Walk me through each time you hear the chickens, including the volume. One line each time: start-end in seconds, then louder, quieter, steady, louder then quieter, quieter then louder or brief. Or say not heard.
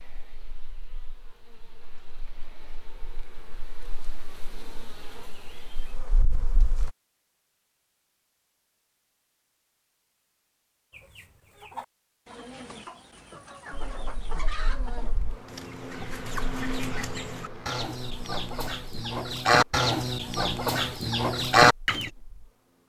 10.9-22.1 louder.